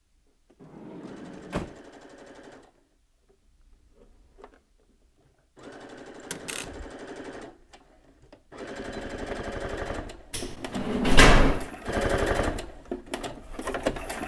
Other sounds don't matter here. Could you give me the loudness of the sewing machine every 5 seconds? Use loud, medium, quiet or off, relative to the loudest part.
quiet, medium, loud.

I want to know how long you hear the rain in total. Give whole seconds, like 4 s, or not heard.
not heard.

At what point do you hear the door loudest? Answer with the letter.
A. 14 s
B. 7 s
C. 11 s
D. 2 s
C.